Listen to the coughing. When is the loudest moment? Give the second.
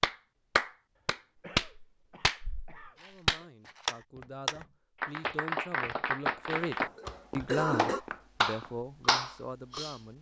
8 s.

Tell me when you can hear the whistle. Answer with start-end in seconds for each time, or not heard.
not heard.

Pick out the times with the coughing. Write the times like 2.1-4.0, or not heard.
1.4-3.5, 6.5-8.1.